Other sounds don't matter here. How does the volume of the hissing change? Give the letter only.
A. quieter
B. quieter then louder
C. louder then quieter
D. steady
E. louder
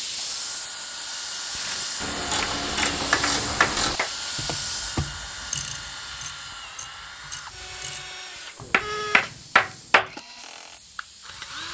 A.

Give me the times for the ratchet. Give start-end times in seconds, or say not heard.
1.6-8.0.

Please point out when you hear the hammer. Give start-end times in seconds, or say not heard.
2.2-4.1, 8.6-10.1.